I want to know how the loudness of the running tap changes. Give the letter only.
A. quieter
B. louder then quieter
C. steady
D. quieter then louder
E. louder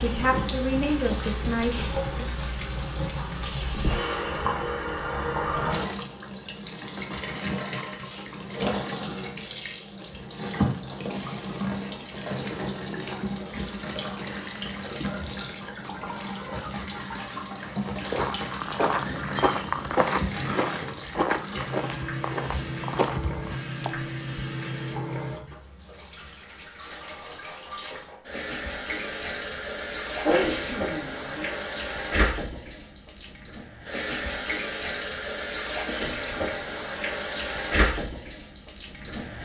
C.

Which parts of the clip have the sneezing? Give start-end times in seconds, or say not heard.
8.0-8.4, 30.2-31.6.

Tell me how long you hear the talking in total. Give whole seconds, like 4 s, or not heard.
2 s.